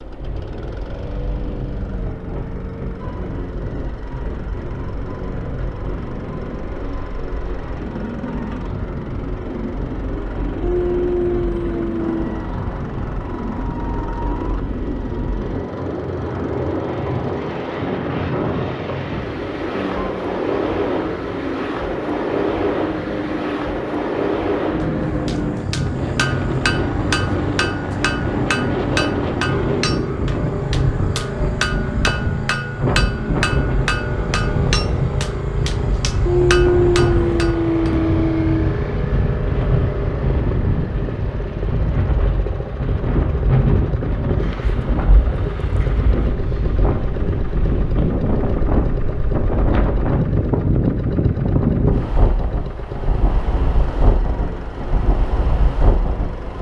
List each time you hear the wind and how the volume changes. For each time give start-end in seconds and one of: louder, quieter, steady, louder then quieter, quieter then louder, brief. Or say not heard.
0.0-56.5 louder.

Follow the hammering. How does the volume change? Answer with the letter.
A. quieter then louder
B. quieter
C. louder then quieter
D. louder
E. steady
E.